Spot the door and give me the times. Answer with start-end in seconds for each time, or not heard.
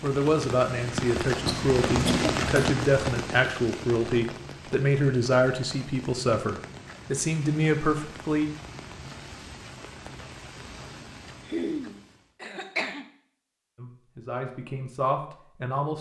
not heard.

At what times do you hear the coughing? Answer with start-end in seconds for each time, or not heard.
1.4-2.6, 11.4-13.1.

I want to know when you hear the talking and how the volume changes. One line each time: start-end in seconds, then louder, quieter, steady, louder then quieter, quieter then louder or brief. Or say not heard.
0.0-8.4 steady
13.8-15.9 brief.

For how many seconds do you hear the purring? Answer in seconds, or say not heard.
not heard.